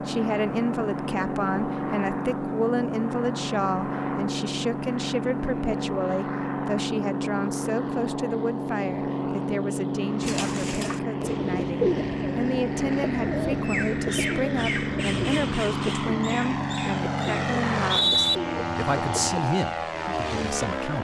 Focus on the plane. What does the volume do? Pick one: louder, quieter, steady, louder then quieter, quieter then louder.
steady.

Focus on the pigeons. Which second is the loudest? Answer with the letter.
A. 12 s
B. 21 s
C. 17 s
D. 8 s
A.